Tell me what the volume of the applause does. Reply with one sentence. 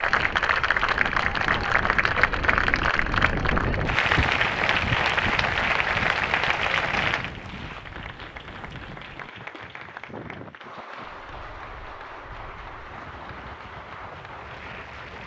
The loudness of the applause goes down.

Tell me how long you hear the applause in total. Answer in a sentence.
The applause can be heard for 15 seconds in total.